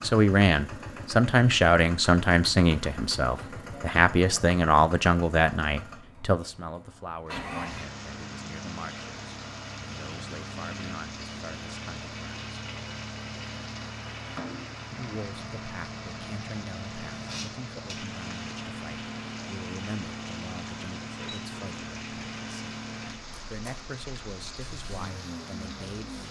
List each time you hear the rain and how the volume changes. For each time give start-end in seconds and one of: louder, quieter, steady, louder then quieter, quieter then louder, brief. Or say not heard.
7.7-26.2 steady.